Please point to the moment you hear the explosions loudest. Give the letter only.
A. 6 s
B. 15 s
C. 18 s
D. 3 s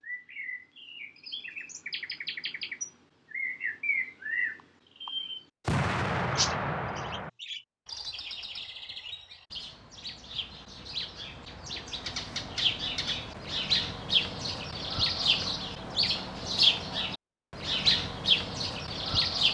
A.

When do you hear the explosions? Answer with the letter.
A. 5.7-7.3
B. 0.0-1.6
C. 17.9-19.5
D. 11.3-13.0
A.